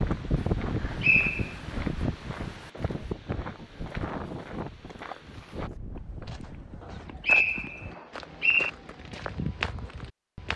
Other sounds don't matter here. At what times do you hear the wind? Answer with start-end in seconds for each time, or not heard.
0.0-6.8.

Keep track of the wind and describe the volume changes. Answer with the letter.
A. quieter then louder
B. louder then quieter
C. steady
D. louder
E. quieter
E.